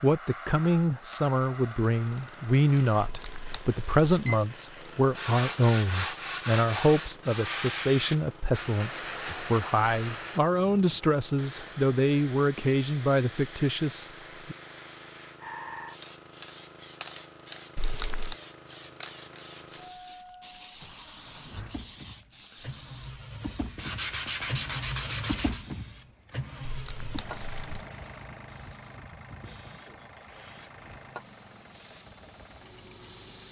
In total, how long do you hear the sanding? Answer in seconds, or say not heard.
5 s.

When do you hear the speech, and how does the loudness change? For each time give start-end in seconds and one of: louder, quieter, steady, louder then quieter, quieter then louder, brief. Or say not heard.
0.0-14.6 steady.